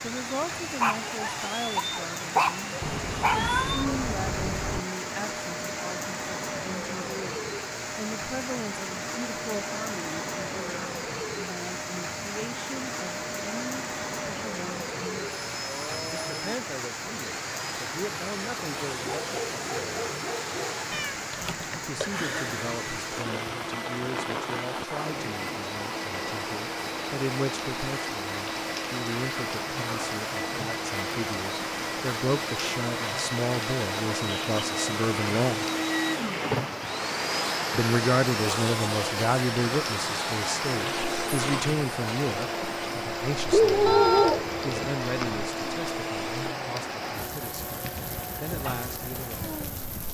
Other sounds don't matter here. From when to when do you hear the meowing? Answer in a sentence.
The meowing can be heard from 2.8 to 4.8 s, from 20.9 to 22.7 s and from 43.9 to 45.4 s.